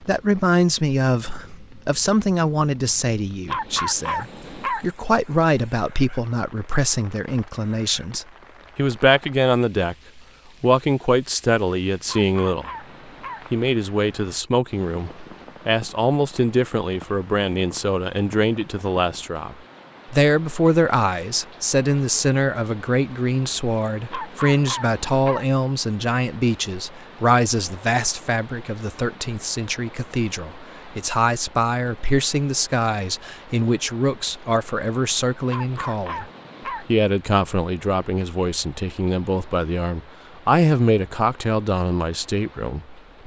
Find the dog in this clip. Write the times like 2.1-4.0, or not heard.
3.5-4.8, 12.1-13.4, 24.1-25.5, 35.5-36.9.